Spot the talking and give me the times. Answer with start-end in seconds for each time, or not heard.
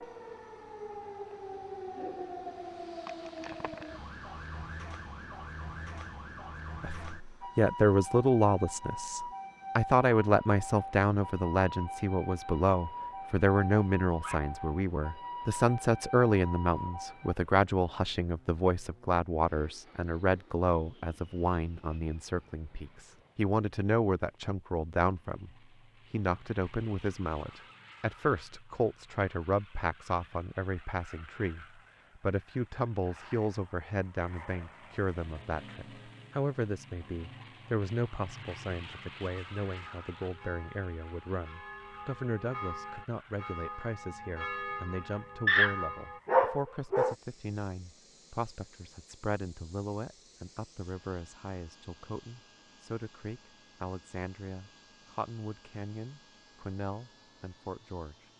6.8-25.5, 26.1-58.2.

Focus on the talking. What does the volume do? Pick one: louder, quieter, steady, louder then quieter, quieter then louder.
quieter.